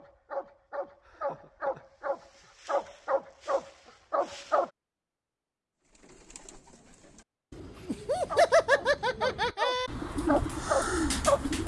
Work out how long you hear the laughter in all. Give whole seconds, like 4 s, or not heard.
3 s.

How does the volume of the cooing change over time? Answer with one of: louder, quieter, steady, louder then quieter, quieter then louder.
louder.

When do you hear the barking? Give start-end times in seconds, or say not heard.
0.0-4.7, 8.2-11.6.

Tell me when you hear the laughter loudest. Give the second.
9 s.